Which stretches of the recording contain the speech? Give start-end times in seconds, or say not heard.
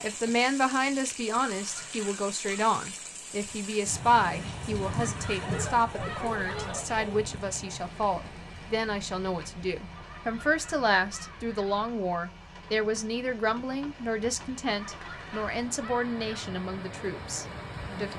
0.0-18.1.